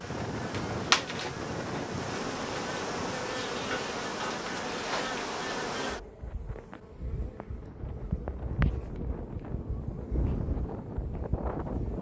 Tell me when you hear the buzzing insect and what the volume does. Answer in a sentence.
The buzzing insect can be heard from 0.0 to 11.9 s, getting quieter.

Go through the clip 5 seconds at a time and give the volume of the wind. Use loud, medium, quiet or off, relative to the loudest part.
loud, medium, loud.